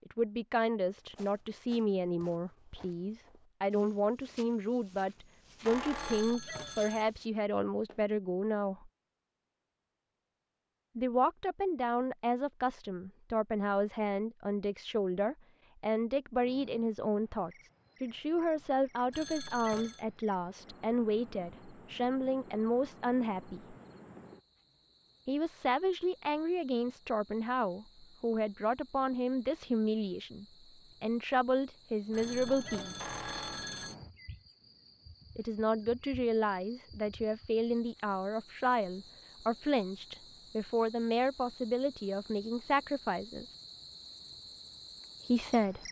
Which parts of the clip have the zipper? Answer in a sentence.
The zipper can't be heard in this clip.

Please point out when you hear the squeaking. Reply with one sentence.
The squeaking can be heard from 5.7 to 6.3 s and from 33.0 to 33.7 s.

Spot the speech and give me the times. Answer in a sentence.
The speech can be heard from 0.1 to 8.9 s, from 10.9 to 23.8 s, from 25.2 to 33.0 s, from 35.4 to 43.5 s and from 45.2 to 45.8 s.